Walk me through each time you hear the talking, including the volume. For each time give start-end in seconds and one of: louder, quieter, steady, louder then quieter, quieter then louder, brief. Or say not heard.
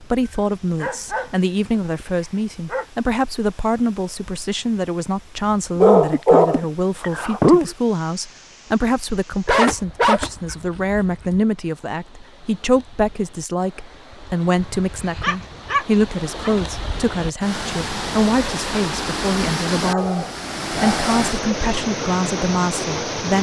0.0-23.3 steady.